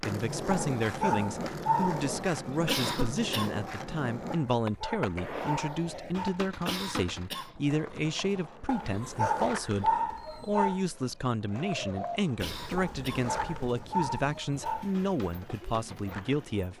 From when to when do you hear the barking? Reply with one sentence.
The barking can be heard from 0.5 to 2.2 s, from 4.3 to 6.5 s, from 8.7 to 10.8 s and from 12.8 to 14.9 s.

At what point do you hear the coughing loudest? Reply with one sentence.
The loudest moment of the coughing is at 3 seconds.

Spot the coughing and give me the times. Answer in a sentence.
The coughing can be heard from 2.5 to 3.5 s, from 6.5 to 7.5 s and from 12.2 to 13.3 s.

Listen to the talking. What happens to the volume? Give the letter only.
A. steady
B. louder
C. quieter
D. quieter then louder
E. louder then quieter
A.